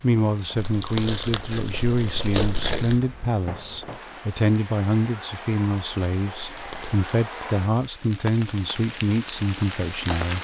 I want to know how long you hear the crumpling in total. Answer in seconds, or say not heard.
3 s.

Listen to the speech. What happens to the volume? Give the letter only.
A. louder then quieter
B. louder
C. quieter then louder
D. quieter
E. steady
E.